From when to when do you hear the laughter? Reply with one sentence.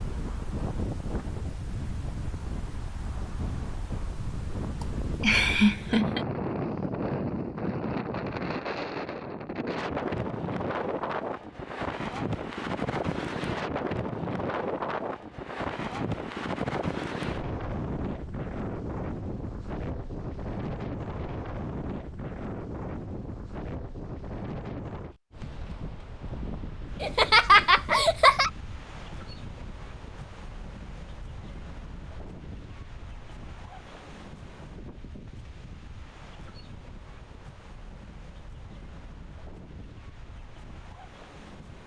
The laughter can be heard from 4.8 to 6.2 s and from 27.0 to 28.5 s.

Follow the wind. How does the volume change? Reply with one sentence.
The volume of the wind goes down.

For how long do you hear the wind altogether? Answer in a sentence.
The wind can be heard for 42 seconds in total.